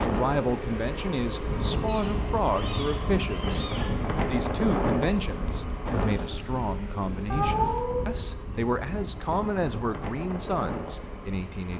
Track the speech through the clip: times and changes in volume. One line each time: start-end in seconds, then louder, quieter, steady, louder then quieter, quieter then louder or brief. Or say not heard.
0.0-11.7 steady.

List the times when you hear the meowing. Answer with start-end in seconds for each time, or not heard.
1.9-3.9, 7.3-8.2.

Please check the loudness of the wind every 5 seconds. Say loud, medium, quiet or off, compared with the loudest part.
loud, medium, medium.